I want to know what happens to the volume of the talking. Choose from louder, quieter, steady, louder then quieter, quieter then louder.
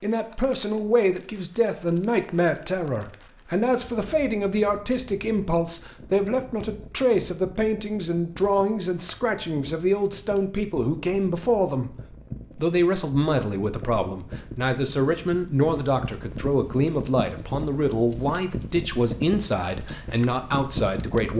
steady.